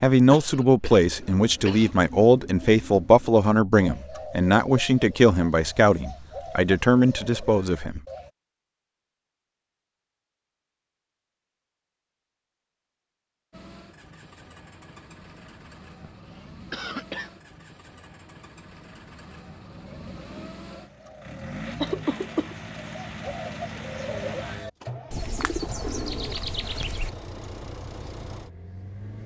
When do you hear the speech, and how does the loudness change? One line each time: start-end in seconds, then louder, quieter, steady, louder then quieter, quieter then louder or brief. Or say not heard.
0.0-8.0 steady.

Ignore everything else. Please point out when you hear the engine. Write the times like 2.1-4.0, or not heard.
13.5-29.2.